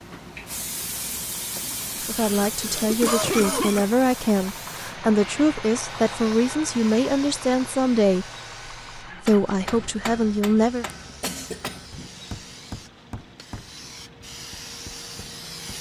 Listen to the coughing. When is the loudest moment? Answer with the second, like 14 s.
3 s.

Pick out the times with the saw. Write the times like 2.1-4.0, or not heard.
not heard.